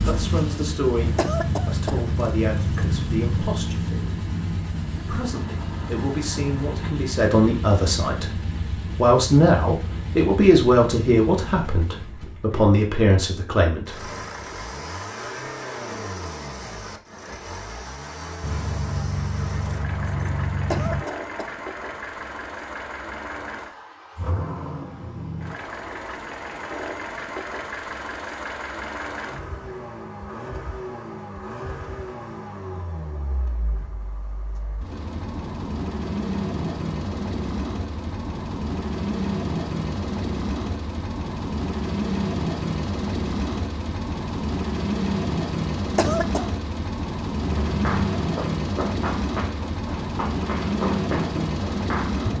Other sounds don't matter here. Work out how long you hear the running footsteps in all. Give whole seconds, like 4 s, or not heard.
5 s.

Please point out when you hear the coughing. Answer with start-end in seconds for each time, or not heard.
1.1-2.0, 20.7-21.6, 46.0-46.5.